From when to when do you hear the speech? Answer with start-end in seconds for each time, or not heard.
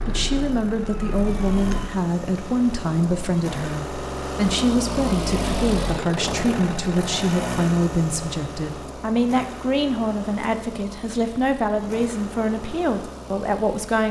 0.1-14.0.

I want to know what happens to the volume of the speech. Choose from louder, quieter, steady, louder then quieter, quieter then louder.
steady.